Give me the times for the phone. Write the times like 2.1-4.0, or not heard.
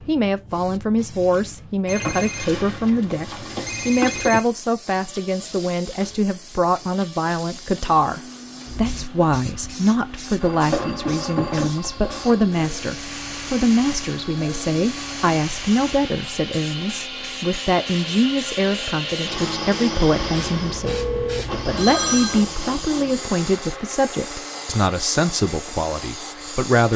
1.9-4.5, 10.4-12.4, 20.9-22.4.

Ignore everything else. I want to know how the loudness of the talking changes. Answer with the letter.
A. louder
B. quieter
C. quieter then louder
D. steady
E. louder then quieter
D.